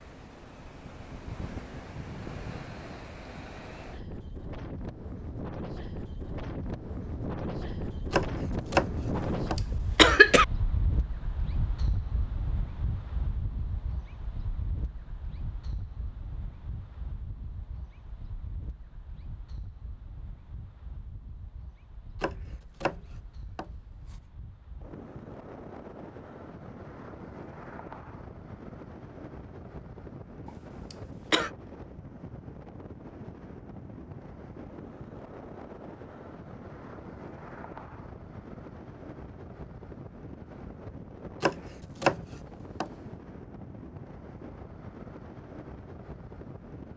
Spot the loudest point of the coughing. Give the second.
10 s.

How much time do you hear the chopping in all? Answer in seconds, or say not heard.
5 s.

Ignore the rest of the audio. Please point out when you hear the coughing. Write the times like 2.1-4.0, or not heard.
9.2-10.4, 30.4-31.5.